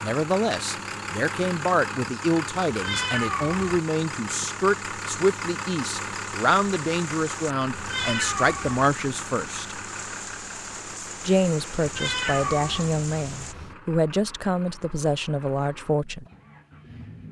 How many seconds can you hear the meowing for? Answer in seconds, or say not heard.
4 s.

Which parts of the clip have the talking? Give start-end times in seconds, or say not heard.
0.0-9.8, 11.2-16.2.